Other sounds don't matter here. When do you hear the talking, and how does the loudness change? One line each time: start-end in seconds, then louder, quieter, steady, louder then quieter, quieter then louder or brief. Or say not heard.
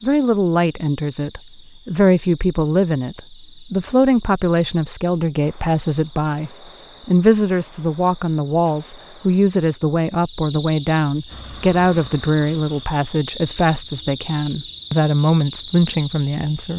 0.0-16.7 steady.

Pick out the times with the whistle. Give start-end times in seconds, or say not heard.
not heard.